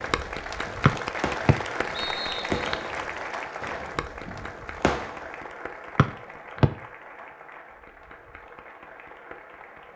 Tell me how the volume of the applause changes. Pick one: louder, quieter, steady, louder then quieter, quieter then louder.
quieter.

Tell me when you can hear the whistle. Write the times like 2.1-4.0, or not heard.
0.8-2.6, 6.0-6.7.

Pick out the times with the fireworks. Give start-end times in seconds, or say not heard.
0.0-5.2.